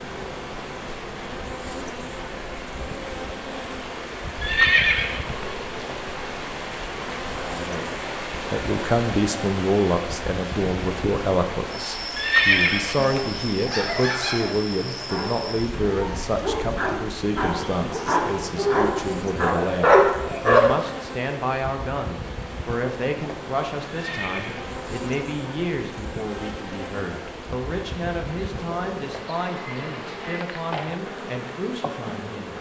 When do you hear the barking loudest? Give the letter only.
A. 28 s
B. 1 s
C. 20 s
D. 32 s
C.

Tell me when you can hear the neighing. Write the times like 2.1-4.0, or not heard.
4.4-5.5, 12.2-13.2, 23.9-24.7.